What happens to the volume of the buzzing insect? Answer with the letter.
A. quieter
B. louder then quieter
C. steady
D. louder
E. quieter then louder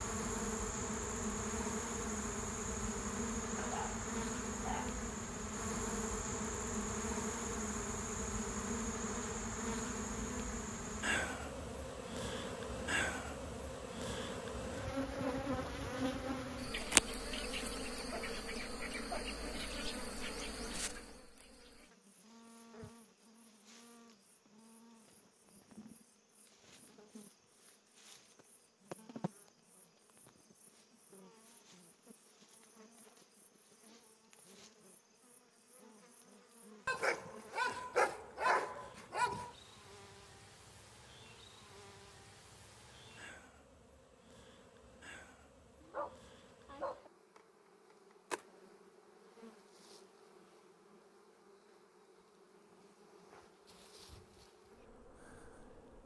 A.